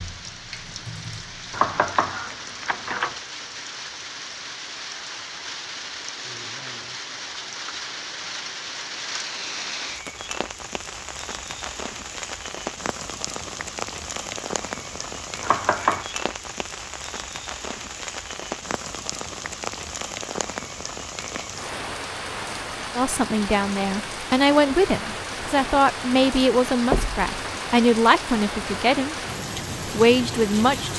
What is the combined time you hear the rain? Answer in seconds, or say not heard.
31 s.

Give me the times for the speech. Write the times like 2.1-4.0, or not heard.
22.9-29.1, 29.9-30.9.